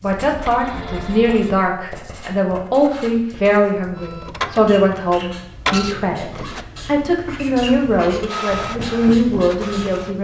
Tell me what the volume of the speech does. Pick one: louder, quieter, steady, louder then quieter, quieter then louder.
steady.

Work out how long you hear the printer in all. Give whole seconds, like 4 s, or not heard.
6 s.